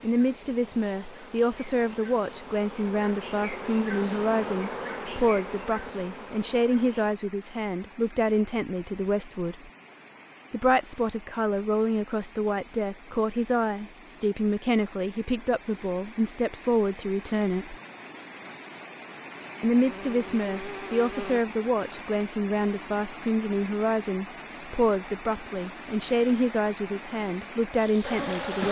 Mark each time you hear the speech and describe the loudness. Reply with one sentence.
You can hear the speech from 0.0 to 9.7 s, at a steady volume; from 10.5 to 17.8 s, at a steady volume; and from 19.6 to 28.6 s, at a steady volume.